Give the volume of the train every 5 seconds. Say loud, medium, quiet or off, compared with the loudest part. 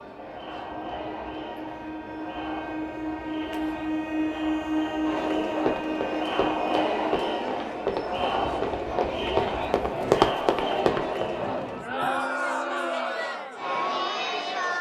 loud, loud, medium.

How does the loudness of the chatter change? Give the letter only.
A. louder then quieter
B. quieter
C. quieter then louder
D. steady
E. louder
E.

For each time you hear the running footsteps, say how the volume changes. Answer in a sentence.
You can hear the running footsteps from 5.5 to 11.3 s, getting louder.